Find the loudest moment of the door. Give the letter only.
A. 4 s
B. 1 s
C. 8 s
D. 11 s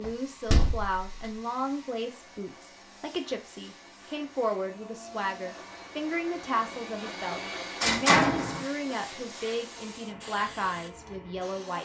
C.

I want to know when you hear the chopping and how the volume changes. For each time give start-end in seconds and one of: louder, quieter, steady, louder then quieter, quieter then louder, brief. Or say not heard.
not heard.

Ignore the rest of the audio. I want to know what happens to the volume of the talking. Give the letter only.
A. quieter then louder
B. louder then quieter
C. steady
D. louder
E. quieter
C.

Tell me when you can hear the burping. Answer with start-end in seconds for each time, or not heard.
not heard.